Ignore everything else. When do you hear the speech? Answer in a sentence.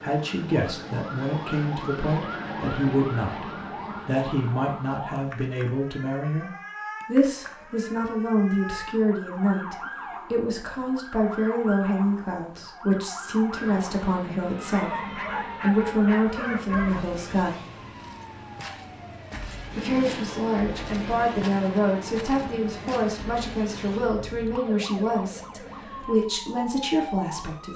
The speech can be heard from 0.0 to 3.5 s, from 4.0 to 17.6 s and from 19.8 to 27.7 s.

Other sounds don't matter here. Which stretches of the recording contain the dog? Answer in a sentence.
You can hear the dog from 14.7 to 17.1 s.